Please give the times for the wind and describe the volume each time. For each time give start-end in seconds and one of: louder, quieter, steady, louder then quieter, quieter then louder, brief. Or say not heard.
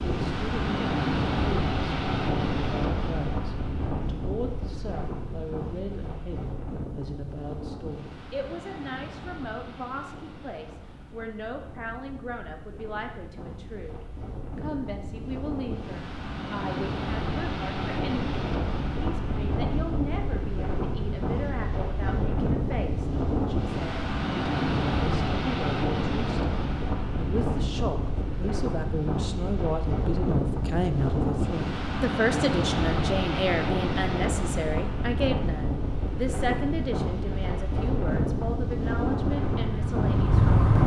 0.0-40.8 quieter then louder.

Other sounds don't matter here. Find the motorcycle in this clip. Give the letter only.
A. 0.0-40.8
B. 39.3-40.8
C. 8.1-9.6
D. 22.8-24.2
B.